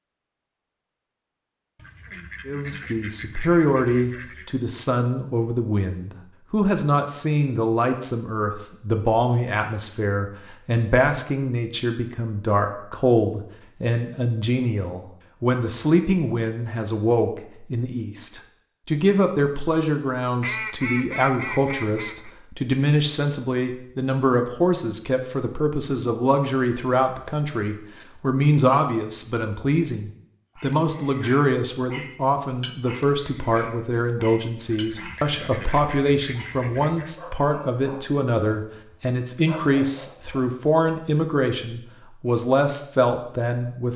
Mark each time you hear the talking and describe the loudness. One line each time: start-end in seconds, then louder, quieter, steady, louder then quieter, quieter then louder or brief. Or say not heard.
2.5-43.9 steady.